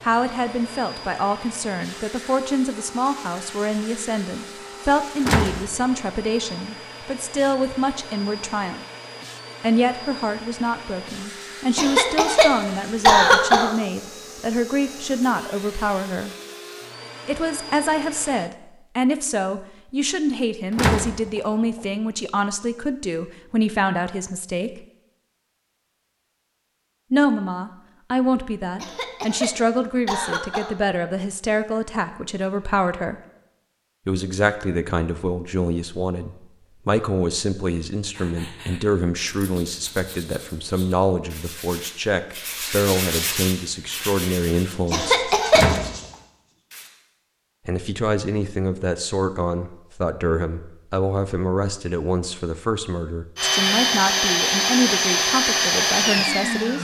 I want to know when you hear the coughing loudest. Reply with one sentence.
The loudest moment of the coughing is at 13 seconds.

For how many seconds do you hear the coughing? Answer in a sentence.
The coughing can be heard for 5 seconds in total.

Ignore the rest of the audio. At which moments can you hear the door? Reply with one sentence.
The door can be heard from 5.2 to 5.7 s, from 20.8 to 21.8 s and from 45.5 to 46.0 s.